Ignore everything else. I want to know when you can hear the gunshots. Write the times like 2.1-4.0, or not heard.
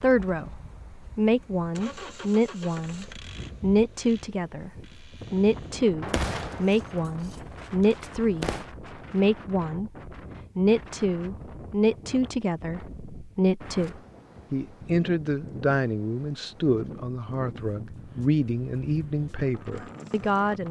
6.0-8.7.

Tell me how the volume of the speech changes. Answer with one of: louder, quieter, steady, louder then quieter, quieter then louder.
steady.